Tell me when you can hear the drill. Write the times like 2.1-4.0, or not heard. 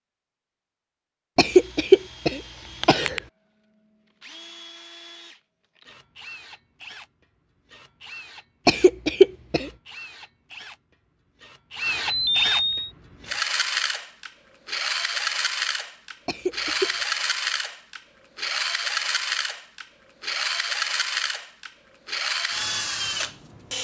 1.5-23.7.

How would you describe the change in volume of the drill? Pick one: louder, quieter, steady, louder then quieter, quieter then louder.
louder.